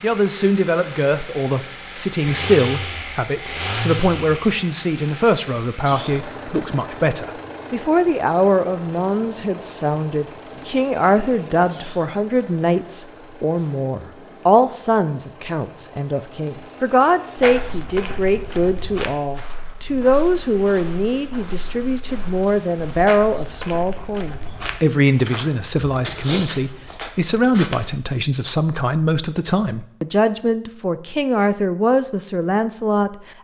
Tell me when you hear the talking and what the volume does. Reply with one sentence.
The talking can be heard from 0.0 to 33.1 s, at a steady volume.